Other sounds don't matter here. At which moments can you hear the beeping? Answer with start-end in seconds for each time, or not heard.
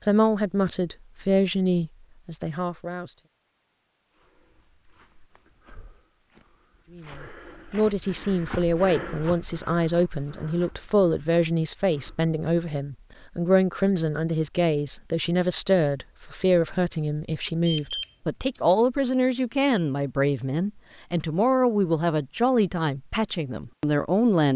17.6-18.6.